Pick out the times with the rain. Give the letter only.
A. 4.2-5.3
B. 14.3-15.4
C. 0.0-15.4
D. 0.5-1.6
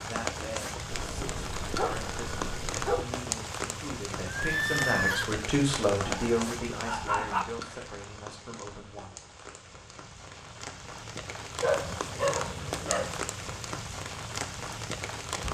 C.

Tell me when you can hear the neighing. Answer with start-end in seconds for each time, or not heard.
4.2-5.3.